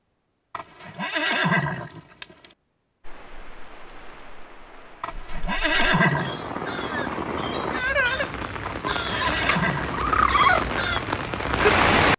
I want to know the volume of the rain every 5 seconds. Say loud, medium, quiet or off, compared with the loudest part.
quiet, medium, loud.